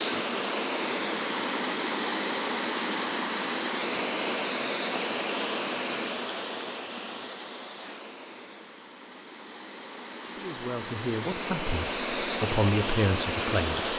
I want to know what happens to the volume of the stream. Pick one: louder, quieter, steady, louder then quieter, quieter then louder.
quieter then louder.